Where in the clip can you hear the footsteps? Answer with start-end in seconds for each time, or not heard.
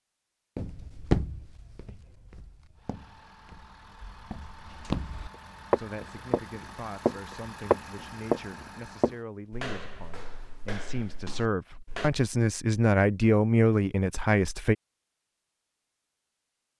0.6-12.1.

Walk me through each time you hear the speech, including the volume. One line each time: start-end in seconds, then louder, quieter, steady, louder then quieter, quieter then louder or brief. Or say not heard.
5.7-14.8 louder.